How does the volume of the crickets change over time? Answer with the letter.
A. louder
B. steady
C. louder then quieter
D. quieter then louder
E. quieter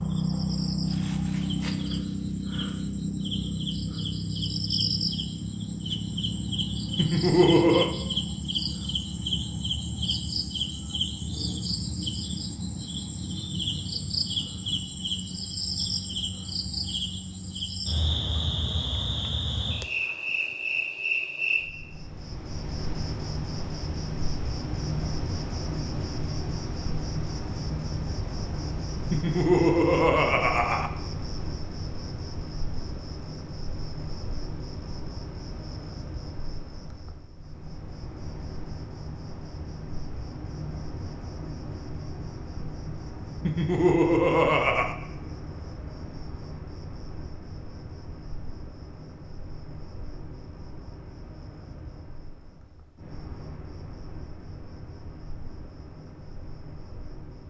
E.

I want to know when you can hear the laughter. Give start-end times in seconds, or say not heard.
7.0-8.0, 29.1-30.9, 43.4-45.0.